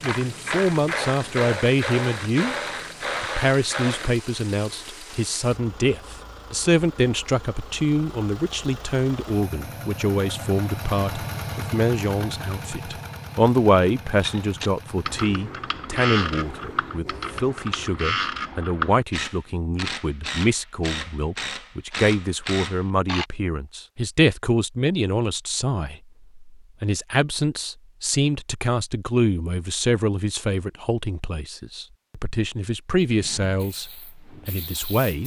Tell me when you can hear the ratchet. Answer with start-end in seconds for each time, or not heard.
0.0-4.2, 14.1-23.2.